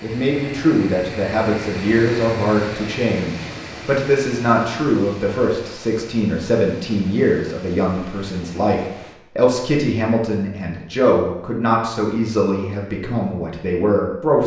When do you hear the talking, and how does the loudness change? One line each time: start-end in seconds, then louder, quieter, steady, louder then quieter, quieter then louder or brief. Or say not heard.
0.0-14.4 steady.